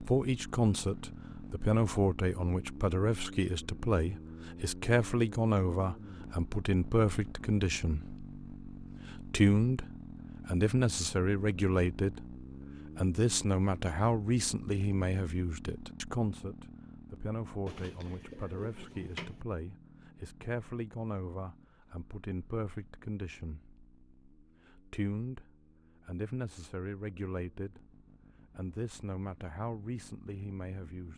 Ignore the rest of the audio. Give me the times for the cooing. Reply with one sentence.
The cooing can be heard from 17.6 to 19.4 s.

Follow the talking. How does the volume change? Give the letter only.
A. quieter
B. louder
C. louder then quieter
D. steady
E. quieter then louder
A.